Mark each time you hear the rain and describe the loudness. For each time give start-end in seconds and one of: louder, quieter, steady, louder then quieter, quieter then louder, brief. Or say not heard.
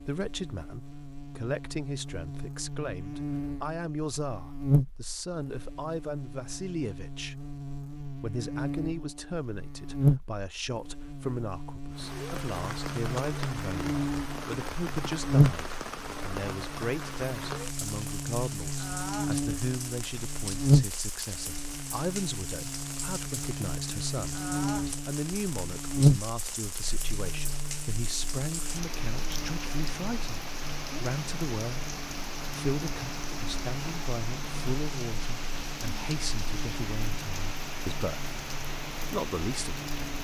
11.9-40.2 steady.